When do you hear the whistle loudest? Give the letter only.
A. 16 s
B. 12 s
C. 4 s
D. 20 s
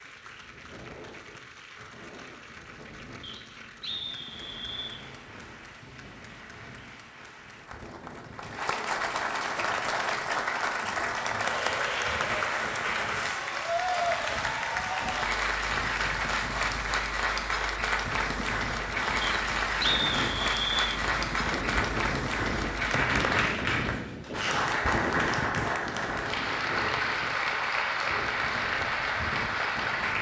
D.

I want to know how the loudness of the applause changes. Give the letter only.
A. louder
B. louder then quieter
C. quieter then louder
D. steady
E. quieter
A.